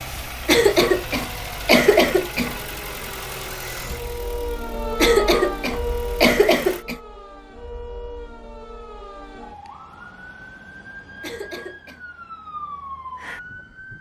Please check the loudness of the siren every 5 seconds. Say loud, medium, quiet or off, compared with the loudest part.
loud, loud, medium.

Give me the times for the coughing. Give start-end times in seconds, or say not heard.
0.5-2.5, 5.0-7.0, 11.2-12.0.